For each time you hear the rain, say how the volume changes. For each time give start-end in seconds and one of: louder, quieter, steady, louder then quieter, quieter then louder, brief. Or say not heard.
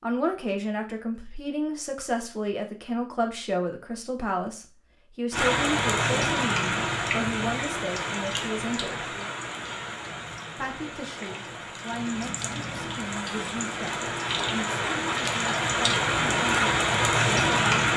5.3-17.9 quieter then louder.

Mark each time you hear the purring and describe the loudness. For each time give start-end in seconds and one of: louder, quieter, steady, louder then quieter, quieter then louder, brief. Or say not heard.
not heard.